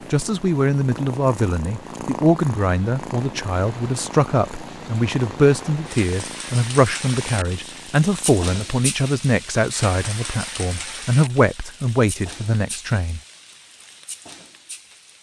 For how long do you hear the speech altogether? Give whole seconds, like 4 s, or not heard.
13 s.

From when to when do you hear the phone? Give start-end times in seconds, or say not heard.
not heard.